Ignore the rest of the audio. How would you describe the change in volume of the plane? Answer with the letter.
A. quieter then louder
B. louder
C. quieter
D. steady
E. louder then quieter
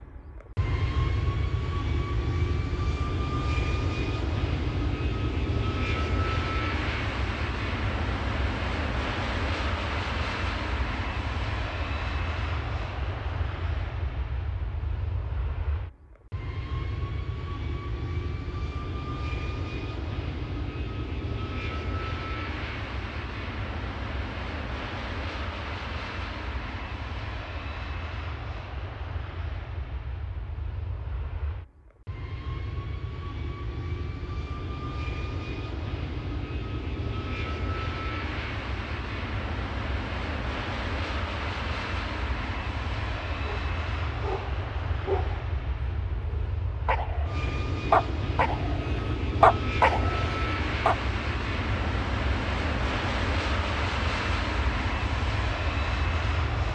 A.